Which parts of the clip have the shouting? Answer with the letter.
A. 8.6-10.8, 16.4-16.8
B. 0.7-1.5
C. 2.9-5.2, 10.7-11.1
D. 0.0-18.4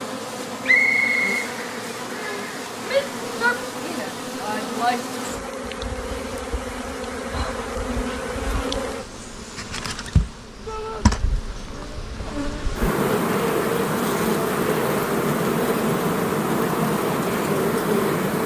C.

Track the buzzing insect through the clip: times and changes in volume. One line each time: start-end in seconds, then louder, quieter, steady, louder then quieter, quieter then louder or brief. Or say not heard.
0.0-18.4 louder.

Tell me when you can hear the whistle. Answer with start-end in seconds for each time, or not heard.
0.7-1.5.